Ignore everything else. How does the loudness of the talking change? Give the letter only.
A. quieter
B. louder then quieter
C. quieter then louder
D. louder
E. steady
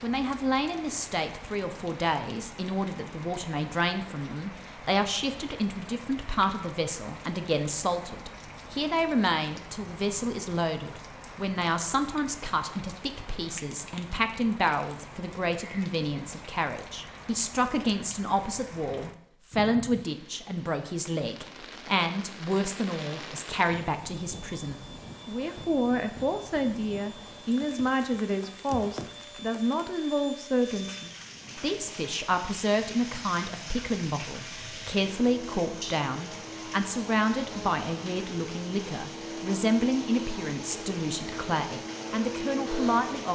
E.